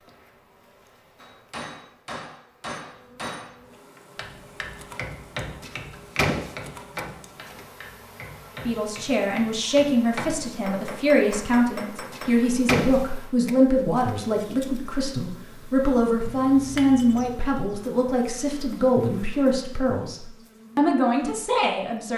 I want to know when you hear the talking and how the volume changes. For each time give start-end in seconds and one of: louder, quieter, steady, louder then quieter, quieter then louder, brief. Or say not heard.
8.7-22.1 steady.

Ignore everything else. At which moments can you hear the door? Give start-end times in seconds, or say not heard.
5.6-7.7, 12.1-14.4.